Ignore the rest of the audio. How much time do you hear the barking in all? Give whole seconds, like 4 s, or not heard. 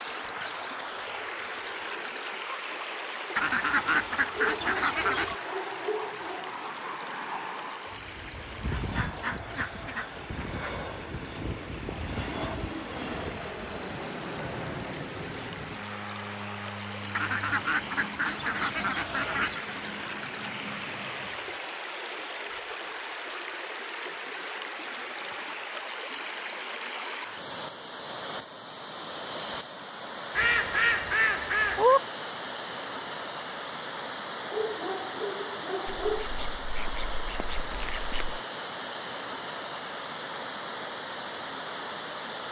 4 s.